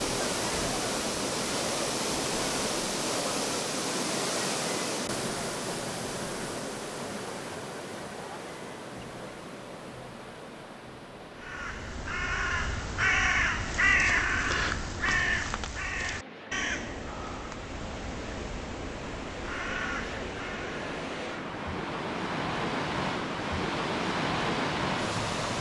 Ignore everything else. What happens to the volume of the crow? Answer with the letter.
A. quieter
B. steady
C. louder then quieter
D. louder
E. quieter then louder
A.